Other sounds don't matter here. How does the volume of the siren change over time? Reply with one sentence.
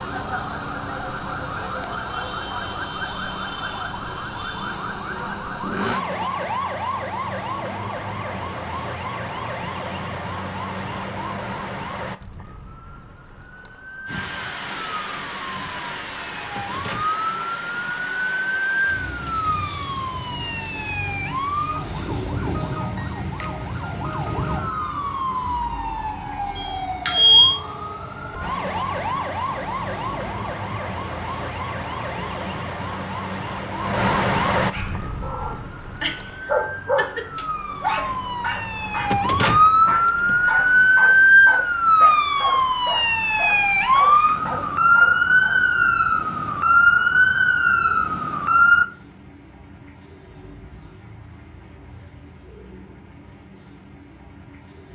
The loudness of the siren goes up.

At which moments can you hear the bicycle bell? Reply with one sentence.
The bicycle bell can be heard from 26.6 to 27.6 s.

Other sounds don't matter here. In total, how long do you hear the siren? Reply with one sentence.
You can hear the siren for 49 seconds altogether.